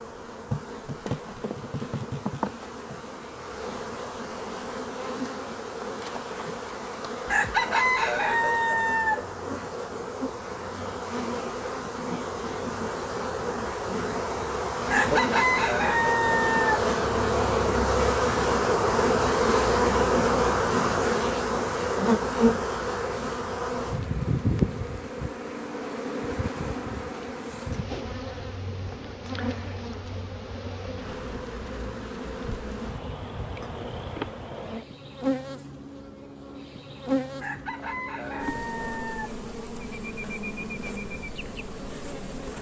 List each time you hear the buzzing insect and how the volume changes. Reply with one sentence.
The buzzing insect can be heard from 0.0 to 42.5 s, getting louder then quieter.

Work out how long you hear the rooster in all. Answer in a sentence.
You can hear the rooster for 6 seconds altogether.